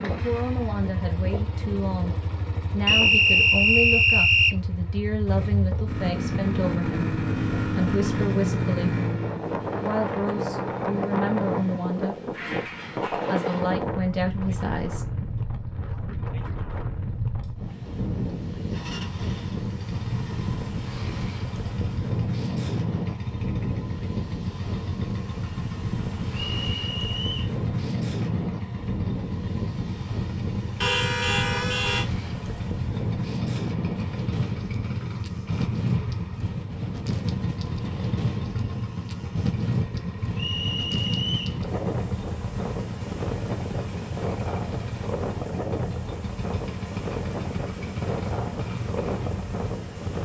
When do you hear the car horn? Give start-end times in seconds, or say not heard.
30.8-32.0.